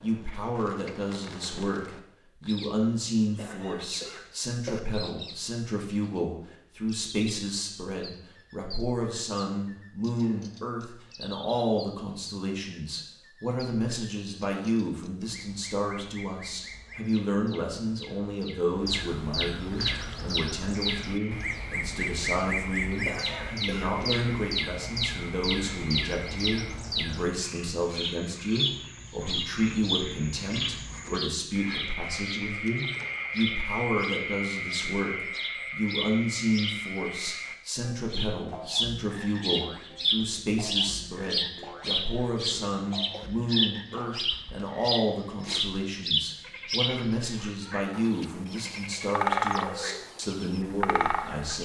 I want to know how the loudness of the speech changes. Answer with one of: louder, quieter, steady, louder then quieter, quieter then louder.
steady.